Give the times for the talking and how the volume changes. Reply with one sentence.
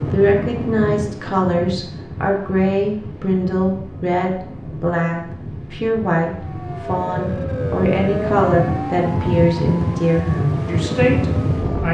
The talking can be heard from 0.0 to 11.8 s, at a steady volume.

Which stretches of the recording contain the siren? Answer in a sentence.
You can hear the siren from 6.3 to 11.8 s.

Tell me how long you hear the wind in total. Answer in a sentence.
The wind can be heard for 12 seconds in total.